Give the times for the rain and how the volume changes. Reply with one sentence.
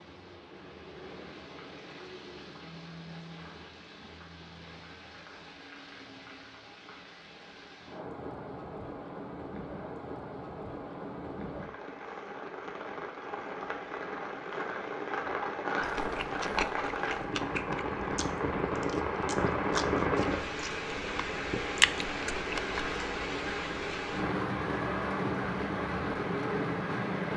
You can hear the rain from 0.0 to 27.3 s, getting louder.